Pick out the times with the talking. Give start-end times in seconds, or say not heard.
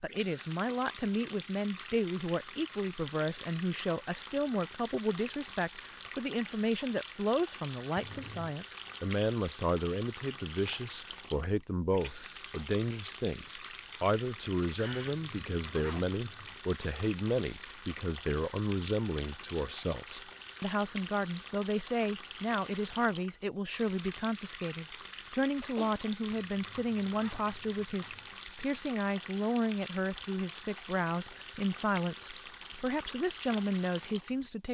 0.0-34.6.